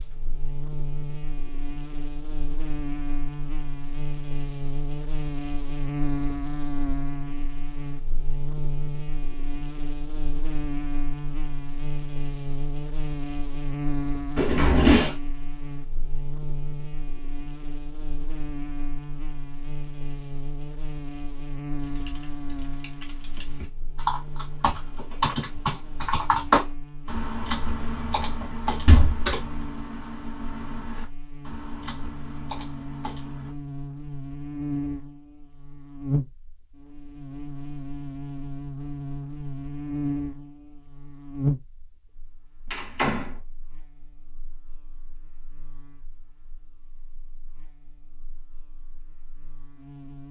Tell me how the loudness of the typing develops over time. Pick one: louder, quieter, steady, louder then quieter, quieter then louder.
louder then quieter.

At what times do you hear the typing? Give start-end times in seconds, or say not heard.
21.8-33.5.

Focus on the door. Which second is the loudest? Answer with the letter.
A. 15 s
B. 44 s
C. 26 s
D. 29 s
A.